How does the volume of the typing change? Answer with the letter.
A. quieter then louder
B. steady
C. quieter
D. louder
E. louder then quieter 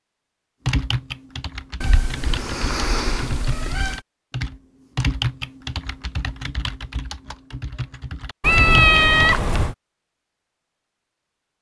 E.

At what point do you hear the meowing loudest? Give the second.
9 s.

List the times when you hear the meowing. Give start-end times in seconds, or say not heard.
1.8-4.0, 8.4-9.8.